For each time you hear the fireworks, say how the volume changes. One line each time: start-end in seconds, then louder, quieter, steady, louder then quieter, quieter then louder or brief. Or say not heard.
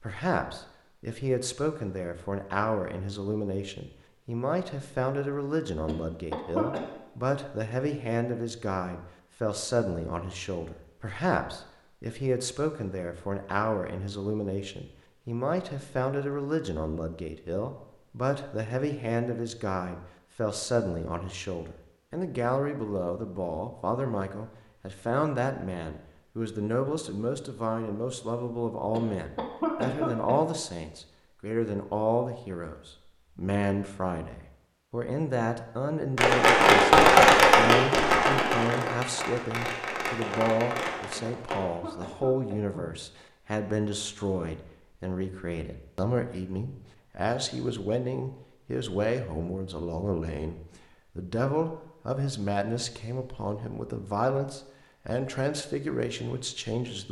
36.1-41.6 quieter.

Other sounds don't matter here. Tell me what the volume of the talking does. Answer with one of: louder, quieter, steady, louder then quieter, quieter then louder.
steady.